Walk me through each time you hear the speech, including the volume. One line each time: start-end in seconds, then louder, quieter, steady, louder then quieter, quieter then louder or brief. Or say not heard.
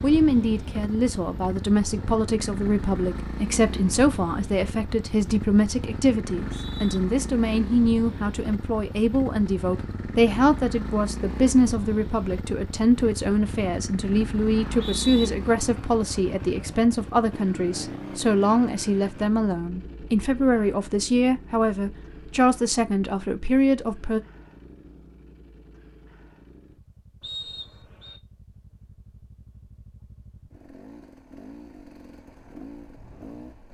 0.0-24.2 steady.